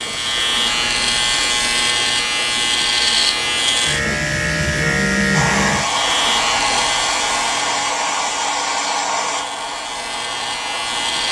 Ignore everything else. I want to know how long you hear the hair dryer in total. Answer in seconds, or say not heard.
6 s.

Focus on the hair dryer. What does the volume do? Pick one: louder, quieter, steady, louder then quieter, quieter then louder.
quieter.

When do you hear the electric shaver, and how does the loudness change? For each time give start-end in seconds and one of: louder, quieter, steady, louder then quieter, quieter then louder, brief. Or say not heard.
0.0-11.2 quieter.